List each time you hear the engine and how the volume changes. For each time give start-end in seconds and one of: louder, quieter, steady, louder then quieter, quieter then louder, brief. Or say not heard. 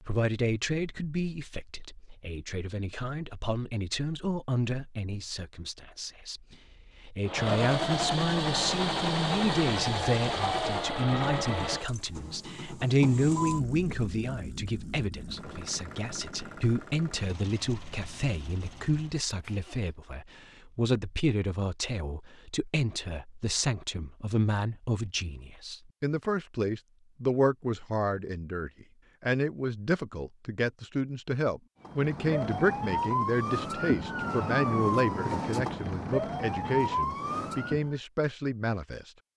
7.2-19.9 quieter.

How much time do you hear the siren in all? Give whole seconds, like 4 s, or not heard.
6 s.